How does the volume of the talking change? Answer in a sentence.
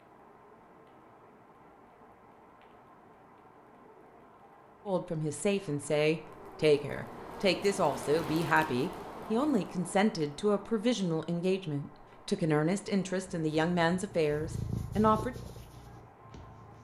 The volume of the talking stays about the same.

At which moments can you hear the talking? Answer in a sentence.
The talking can be heard from 4.8 to 15.3 s.